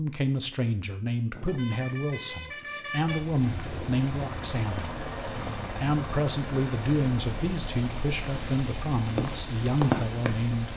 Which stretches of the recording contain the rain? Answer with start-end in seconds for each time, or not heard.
3.0-10.7.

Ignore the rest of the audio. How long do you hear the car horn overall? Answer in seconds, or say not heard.
2 s.